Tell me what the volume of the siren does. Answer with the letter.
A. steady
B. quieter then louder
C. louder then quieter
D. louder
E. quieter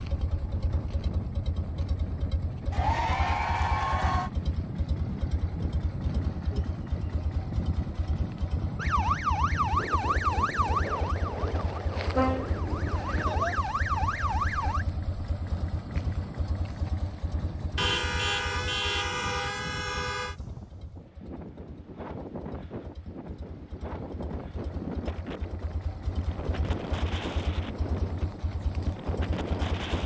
B.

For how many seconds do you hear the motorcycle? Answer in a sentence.
The motorcycle can be heard for 30 seconds in total.